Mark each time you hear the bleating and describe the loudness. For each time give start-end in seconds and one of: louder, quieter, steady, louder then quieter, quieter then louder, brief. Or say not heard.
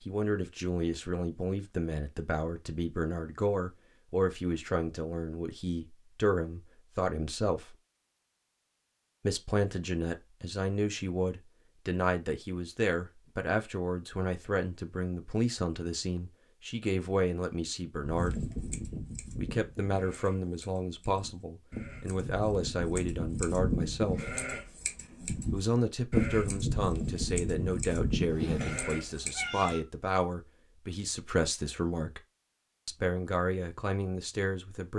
18.0-29.7 louder.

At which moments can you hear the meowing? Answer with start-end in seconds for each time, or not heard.
28.3-29.9.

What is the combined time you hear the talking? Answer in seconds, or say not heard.
31 s.